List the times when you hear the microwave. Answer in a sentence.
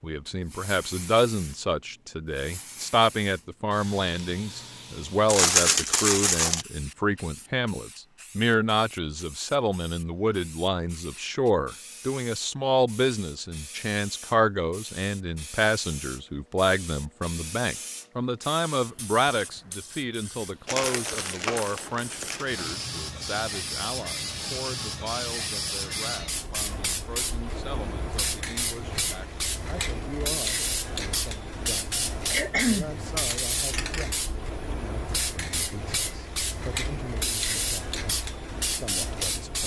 The microwave can't be heard in this clip.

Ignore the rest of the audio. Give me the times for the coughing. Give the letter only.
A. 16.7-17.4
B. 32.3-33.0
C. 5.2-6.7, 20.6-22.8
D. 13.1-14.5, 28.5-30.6
B.